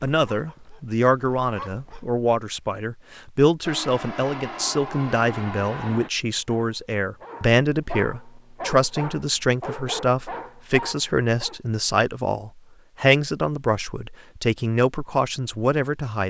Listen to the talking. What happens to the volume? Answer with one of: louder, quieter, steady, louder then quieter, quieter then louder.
steady.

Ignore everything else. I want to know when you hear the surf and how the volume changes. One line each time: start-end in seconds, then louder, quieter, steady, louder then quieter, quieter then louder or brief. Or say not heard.
not heard.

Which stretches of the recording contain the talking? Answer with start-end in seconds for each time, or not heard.
0.0-16.2.